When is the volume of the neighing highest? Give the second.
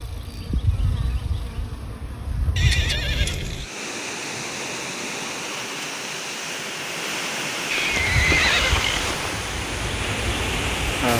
8 s.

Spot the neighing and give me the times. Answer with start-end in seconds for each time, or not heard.
2.5-3.7, 7.7-9.2.